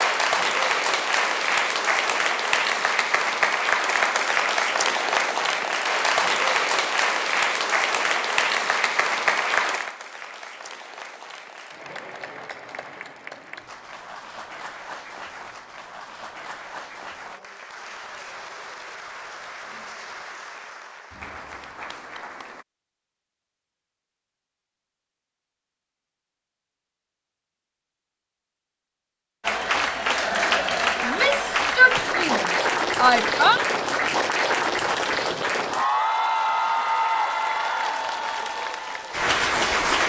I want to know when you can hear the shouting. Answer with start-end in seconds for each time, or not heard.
31.0-33.6.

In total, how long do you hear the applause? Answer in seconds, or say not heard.
33 s.